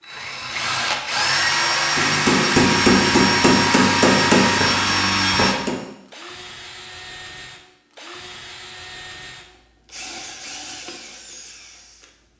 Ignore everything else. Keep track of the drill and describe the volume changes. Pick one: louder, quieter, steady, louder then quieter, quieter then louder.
quieter.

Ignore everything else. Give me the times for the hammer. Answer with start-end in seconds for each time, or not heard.
1.9-5.8.